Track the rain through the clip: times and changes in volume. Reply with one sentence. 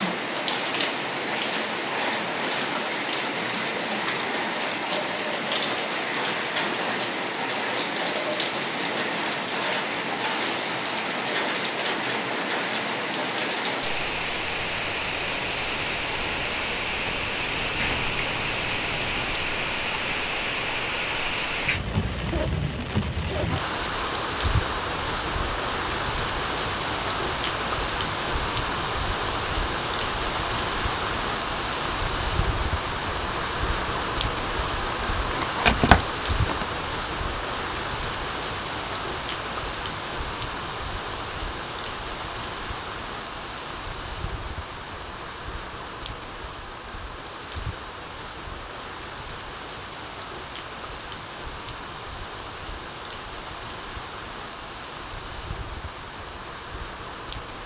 The rain can be heard from 0.0 to 57.6 s, getting quieter.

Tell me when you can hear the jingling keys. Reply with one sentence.
The jingling keys can be heard from 17.6 to 19.4 s and from 35.2 to 36.8 s.